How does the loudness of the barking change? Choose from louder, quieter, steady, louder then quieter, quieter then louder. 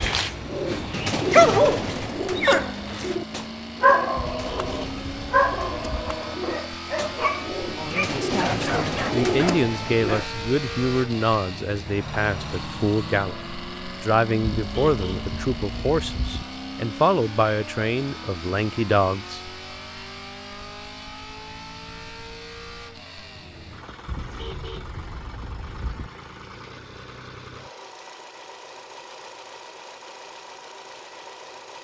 quieter.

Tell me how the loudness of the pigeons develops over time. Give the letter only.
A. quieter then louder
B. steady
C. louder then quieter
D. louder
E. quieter
A.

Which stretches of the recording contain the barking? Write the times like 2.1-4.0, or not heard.
0.0-3.1, 3.8-10.3.